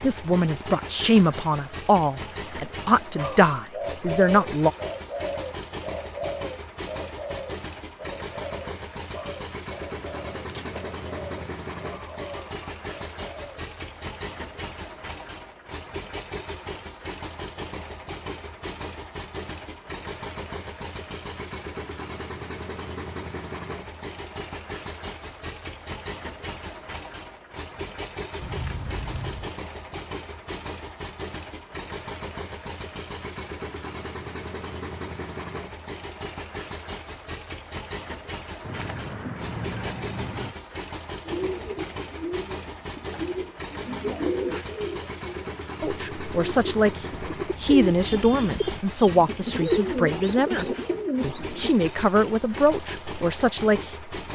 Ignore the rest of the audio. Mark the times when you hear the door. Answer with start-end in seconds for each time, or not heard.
not heard.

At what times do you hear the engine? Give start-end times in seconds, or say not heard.
0.0-54.2.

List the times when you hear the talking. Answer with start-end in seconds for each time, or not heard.
0.0-4.7, 45.8-54.1.